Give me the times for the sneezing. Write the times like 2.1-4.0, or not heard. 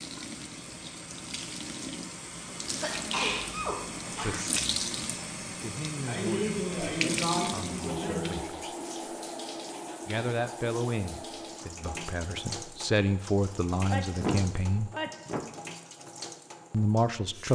2.7-4.3, 6.0-8.6, 13.9-15.4.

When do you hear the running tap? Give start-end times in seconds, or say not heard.
0.0-17.5.